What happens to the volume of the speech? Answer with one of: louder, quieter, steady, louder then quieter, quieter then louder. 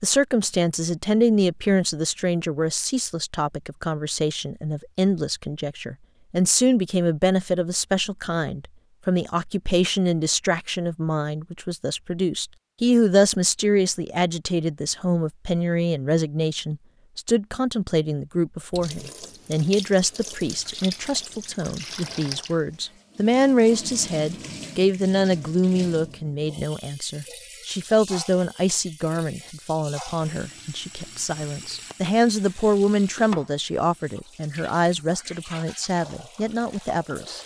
steady.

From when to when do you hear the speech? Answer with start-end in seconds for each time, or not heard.
0.0-37.4.